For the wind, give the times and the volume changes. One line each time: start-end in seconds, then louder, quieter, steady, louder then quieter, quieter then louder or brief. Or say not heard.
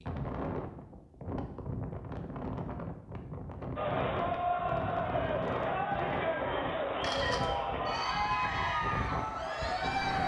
0.0-10.2 steady.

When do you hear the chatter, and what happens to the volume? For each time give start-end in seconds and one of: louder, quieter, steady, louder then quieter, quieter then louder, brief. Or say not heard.
3.8-10.2 steady.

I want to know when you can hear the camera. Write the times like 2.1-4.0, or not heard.
7.0-7.6.